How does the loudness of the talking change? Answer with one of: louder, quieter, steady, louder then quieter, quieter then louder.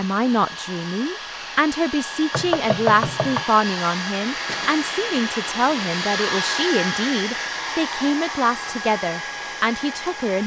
steady.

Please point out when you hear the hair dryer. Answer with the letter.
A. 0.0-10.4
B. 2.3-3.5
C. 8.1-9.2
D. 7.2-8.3
A.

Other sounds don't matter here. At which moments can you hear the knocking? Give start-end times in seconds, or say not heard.
2.3-3.5.